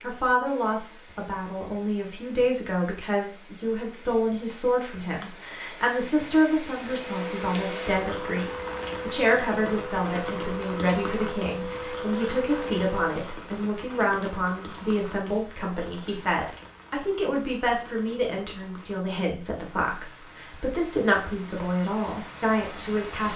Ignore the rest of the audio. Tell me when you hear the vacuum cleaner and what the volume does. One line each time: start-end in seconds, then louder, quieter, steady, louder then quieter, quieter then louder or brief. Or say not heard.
7.0-13.2 steady.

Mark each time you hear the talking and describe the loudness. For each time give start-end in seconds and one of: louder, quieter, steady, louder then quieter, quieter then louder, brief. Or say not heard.
0.0-23.3 steady.